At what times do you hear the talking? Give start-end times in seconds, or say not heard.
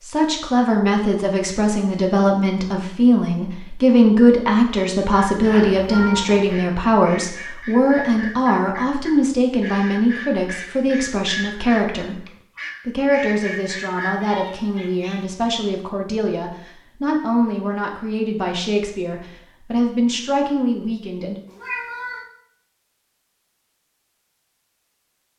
0.0-12.2, 12.8-21.4.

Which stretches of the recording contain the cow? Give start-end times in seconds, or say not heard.
not heard.